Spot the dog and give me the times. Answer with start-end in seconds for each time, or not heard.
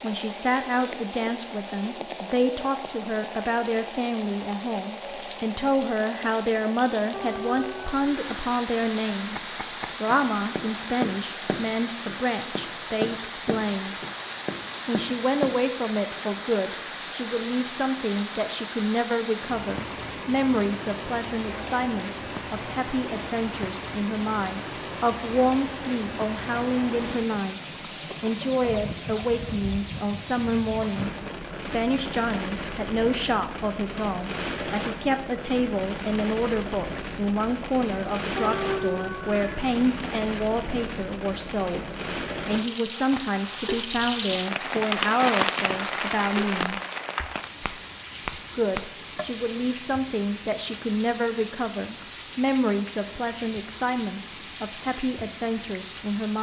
7.1-8.3, 38.4-39.6.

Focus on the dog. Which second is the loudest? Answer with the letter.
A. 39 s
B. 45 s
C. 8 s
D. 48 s
A.